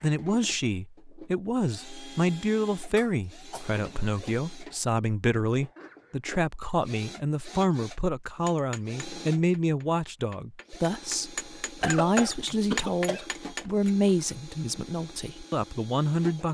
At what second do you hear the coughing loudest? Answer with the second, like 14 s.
12 s.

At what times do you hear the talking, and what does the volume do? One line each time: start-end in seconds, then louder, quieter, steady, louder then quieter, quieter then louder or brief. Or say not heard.
0.0-16.4 steady.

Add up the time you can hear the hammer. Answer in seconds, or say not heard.
6 s.